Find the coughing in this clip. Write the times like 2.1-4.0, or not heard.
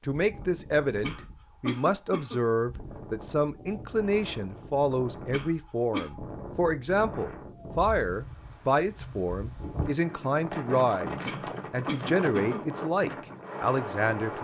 1.0-2.4, 5.3-6.1, 11.2-12.6.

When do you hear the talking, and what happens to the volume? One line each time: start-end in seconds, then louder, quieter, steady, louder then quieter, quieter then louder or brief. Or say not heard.
0.0-14.3 steady.